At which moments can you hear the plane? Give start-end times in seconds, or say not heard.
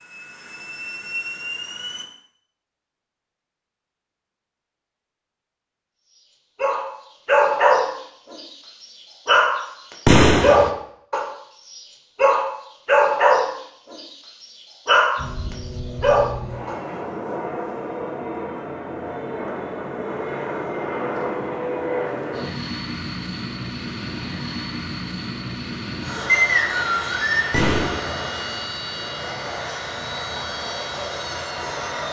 0.0-2.0, 15.2-32.0.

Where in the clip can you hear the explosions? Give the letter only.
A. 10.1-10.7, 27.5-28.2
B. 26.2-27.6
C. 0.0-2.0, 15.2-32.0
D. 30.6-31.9
A.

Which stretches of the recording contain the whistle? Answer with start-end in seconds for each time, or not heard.
26.2-27.6.